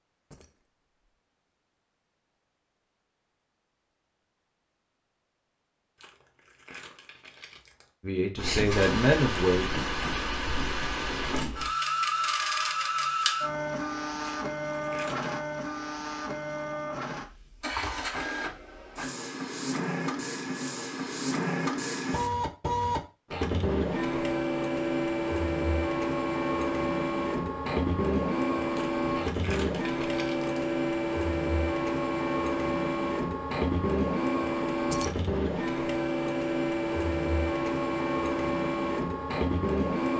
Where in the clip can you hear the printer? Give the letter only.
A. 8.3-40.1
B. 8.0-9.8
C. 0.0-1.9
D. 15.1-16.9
A.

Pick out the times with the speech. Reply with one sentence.
You can hear the speech from 8.0 to 9.8 s.